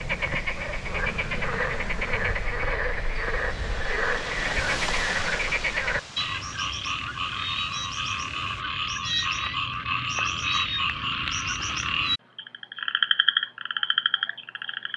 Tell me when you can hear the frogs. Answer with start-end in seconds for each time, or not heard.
0.0-14.9.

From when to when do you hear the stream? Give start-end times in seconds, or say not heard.
0.0-8.7.